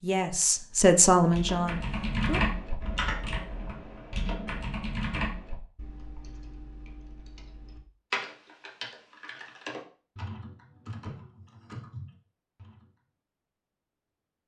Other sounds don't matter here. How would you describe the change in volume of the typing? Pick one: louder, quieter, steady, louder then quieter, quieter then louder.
quieter.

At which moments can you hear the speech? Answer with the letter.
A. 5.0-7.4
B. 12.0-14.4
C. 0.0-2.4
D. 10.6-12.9
C.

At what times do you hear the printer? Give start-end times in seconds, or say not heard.
not heard.